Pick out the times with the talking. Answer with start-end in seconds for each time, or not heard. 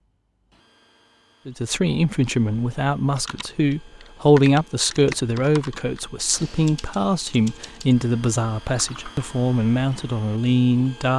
1.4-11.1.